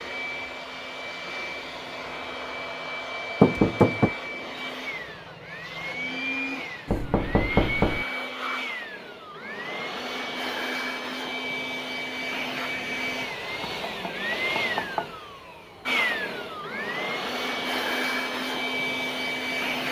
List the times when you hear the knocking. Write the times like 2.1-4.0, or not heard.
3.4-4.1, 6.8-8.1, 13.6-15.2.